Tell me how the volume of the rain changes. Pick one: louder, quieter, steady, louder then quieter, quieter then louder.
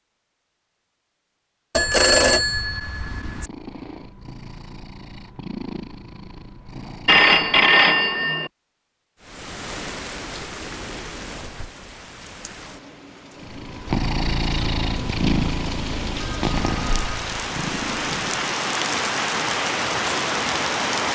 quieter then louder.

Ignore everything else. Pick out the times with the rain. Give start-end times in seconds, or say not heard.
9.2-21.1.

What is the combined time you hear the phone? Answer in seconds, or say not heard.
4 s.